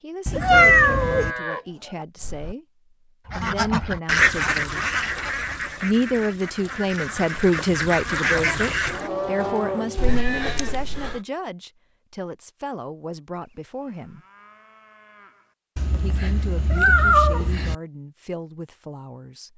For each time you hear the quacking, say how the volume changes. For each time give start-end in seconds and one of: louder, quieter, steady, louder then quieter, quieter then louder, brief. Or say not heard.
3.2-9.1 quieter then louder.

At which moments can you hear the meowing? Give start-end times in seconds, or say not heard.
0.2-1.3, 9.9-11.2, 15.8-17.8.